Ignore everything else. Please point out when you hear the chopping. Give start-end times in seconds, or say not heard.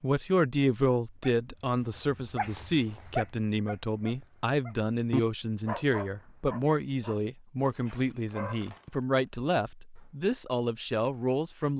not heard.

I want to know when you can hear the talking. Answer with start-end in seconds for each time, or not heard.
0.0-11.7.